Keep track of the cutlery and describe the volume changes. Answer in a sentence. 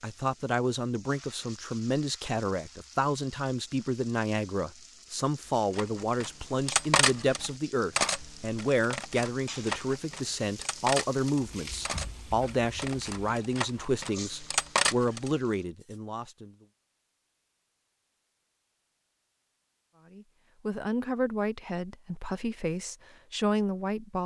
The volume of the cutlery goes down, then up.